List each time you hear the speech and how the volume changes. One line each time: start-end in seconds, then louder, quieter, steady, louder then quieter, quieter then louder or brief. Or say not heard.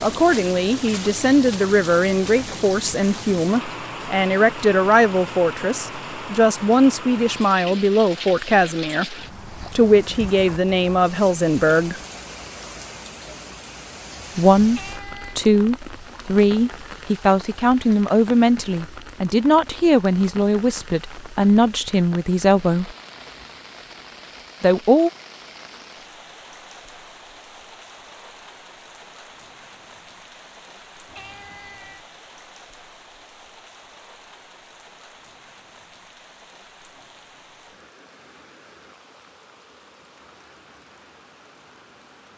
0.0-12.0 steady
14.3-22.9 steady
24.6-25.1 brief.